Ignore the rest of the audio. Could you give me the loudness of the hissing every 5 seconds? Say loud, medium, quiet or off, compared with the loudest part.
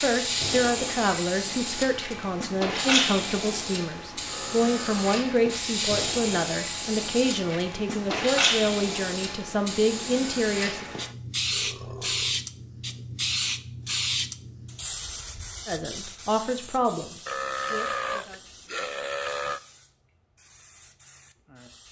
loud, loud, loud, quiet, quiet.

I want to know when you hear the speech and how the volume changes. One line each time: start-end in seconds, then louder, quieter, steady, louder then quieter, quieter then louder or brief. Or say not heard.
0.0-10.8 steady
15.7-18.4 brief.